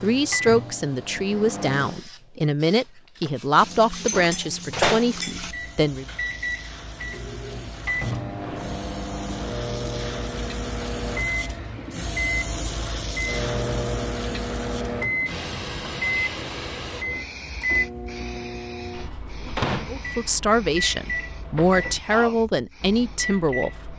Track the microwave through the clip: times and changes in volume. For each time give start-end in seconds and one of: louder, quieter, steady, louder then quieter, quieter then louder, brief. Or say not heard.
0.0-1.9 brief
3.6-23.9 steady.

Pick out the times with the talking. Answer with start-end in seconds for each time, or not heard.
0.0-6.0, 19.9-23.9.